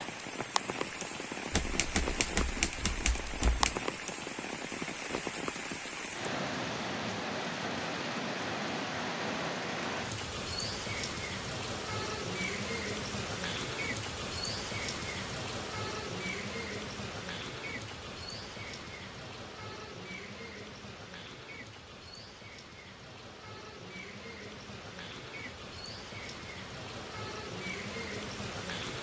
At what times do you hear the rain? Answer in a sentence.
The rain can be heard from 0.0 to 28.9 s.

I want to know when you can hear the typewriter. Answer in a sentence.
The typewriter can be heard from 1.5 to 3.8 s.